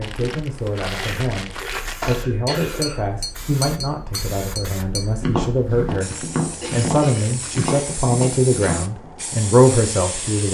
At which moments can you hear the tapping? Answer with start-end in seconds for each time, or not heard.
2.0-9.2.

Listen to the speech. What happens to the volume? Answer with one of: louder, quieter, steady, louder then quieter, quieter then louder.
louder.